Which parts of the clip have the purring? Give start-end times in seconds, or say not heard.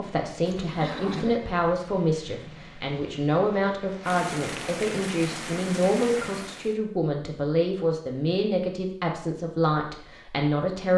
not heard.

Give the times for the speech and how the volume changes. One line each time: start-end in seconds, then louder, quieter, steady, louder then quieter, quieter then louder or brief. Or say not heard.
0.0-10.9 steady.